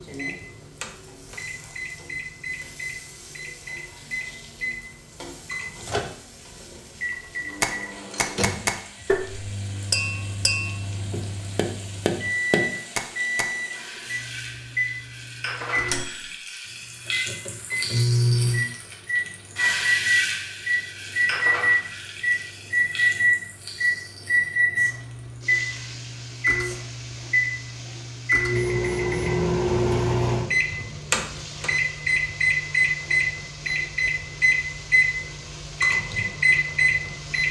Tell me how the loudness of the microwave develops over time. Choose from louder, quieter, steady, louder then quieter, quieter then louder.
louder.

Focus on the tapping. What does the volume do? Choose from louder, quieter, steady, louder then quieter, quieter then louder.
quieter then louder.